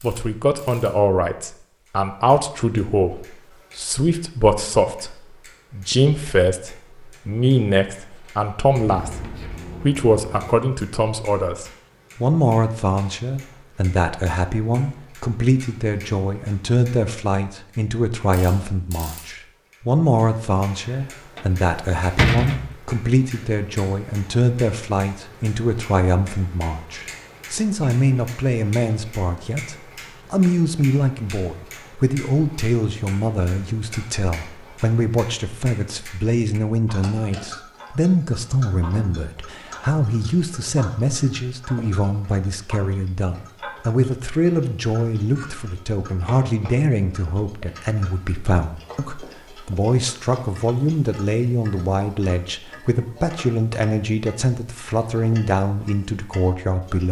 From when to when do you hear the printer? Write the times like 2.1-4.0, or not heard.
not heard.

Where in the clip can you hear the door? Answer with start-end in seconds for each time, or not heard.
20.9-22.8.